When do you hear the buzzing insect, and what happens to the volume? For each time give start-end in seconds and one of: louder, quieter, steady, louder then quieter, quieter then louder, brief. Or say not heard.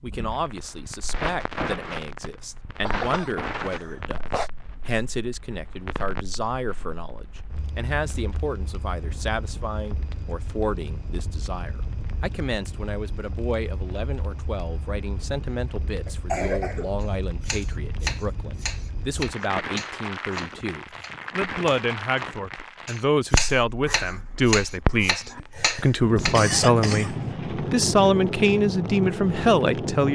not heard.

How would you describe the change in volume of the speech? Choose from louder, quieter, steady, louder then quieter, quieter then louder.
louder.